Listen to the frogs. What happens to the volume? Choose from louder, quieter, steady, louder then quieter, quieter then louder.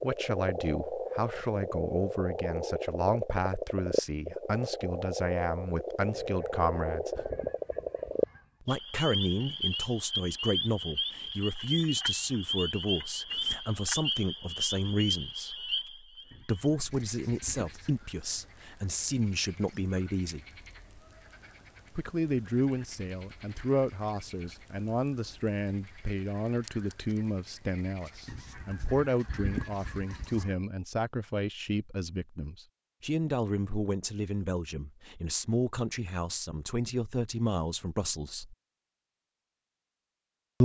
quieter.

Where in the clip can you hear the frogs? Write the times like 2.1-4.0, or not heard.
0.0-30.4.